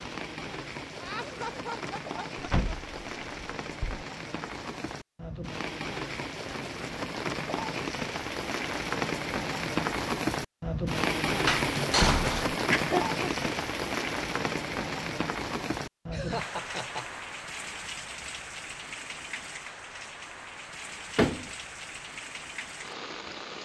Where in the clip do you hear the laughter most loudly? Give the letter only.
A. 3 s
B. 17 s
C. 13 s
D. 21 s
C.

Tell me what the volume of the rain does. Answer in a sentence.
The volume of the rain goes up, then down.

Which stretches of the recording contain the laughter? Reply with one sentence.
The laughter can be heard from 0.9 to 3.2 s, from 12.7 to 13.6 s and from 16.1 to 17.2 s.